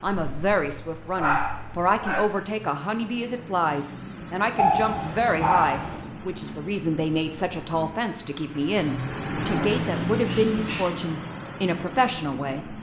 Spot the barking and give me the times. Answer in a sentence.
The barking can be heard from 0.1 to 2.3 s, from 4.5 to 6.0 s and from 9.4 to 10.9 s.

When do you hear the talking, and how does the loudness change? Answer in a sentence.
The talking can be heard from 0.0 to 12.7 s, at a steady volume.